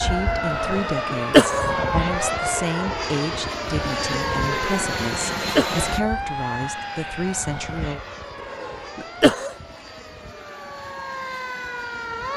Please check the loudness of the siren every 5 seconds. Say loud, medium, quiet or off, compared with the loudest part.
loud, medium, medium.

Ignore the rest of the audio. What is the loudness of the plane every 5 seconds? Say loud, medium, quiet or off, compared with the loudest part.
loud, loud, quiet.